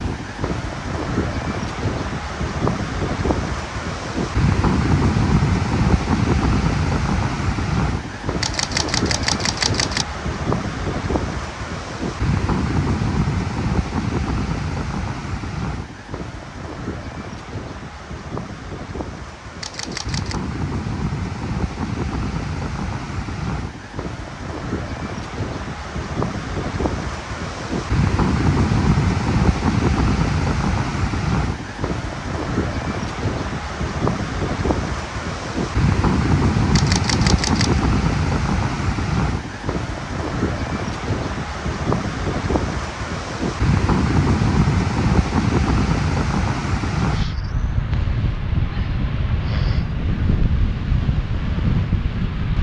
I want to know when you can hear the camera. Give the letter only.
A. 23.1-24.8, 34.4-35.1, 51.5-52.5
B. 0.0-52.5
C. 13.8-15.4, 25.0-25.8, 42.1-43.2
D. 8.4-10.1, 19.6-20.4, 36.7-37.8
D.